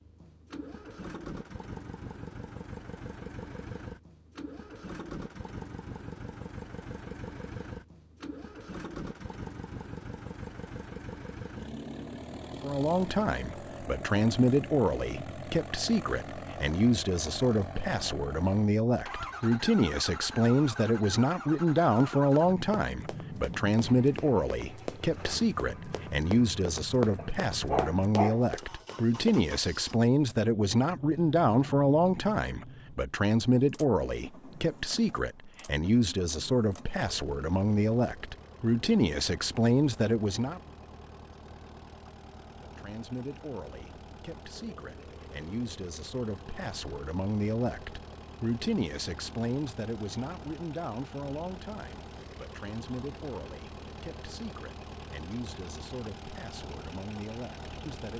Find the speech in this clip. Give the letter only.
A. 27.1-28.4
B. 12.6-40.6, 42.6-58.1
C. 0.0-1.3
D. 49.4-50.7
B.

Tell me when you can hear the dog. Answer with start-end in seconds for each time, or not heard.
27.1-28.4.